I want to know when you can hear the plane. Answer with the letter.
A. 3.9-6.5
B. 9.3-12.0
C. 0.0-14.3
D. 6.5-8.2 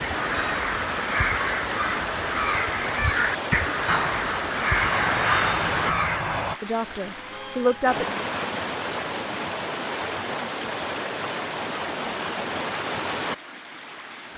A.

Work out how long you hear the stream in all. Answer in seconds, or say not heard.
14 s.